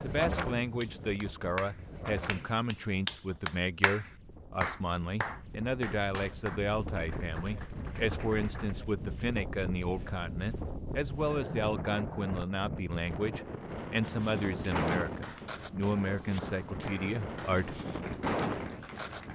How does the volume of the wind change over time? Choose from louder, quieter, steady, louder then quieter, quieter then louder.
louder.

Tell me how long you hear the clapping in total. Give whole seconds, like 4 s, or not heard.
13 s.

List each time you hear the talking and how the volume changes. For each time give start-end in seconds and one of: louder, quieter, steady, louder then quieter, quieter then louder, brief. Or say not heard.
0.0-17.8 steady.